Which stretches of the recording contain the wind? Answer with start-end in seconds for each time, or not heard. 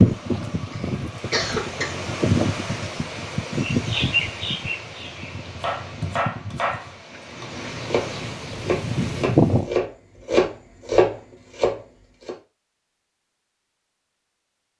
0.0-9.7.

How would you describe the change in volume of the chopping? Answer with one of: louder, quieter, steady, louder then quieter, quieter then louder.
louder.